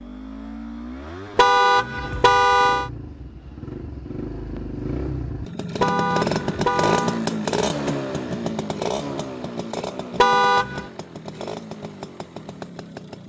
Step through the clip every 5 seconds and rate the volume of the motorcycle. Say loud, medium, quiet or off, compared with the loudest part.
medium, loud, medium.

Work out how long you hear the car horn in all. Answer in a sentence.
You can hear the car horn for 4 seconds altogether.